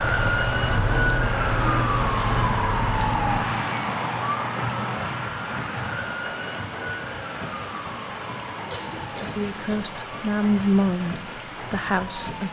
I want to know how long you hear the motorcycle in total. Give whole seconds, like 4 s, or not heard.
3 s.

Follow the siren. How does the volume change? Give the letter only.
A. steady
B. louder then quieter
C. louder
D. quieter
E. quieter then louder
D.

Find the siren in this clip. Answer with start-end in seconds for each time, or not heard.
0.0-12.4.